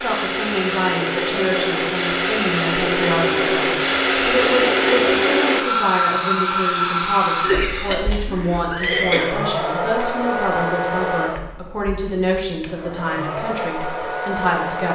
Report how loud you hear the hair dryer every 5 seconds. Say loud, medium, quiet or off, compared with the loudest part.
loud, loud, medium.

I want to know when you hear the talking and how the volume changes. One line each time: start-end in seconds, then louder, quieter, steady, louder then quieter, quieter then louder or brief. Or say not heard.
0.0-14.9 steady.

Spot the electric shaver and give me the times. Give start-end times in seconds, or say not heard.
not heard.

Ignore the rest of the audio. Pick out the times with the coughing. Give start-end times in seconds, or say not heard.
7.4-9.4.